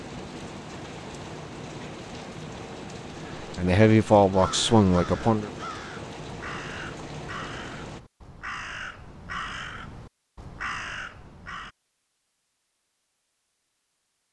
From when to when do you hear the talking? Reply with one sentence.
The talking can be heard from 3.5 to 5.5 s.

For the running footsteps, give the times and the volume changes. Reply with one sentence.
The running footsteps can't be heard in this clip.